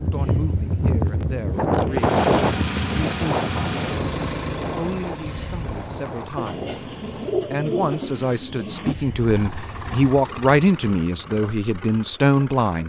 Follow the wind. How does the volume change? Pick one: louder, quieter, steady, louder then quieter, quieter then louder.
louder then quieter.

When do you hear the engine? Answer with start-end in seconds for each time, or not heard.
1.9-7.5, 9.2-12.8.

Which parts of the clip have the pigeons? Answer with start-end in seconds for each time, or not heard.
6.3-8.9.